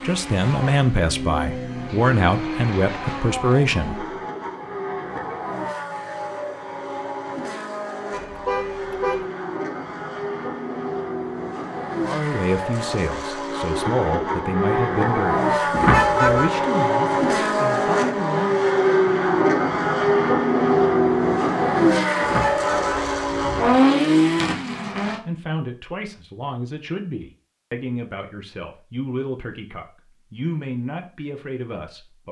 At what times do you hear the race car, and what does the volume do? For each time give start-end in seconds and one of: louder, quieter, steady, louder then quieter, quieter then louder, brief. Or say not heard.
0.0-25.2 louder.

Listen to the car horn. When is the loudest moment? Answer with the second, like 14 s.
16 s.